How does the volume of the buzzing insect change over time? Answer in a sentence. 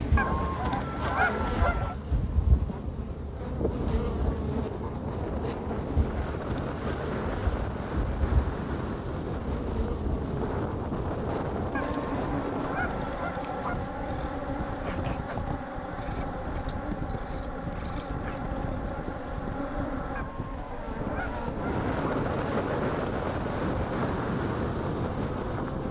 The loudness of the buzzing insect stays about the same.